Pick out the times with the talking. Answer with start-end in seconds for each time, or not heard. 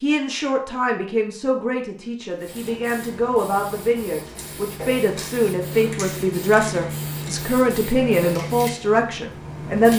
0.0-9.9.